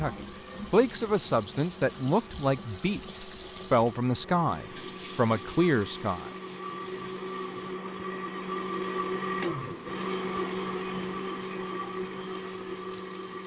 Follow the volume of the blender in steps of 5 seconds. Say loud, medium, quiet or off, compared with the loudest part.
quiet, loud, loud.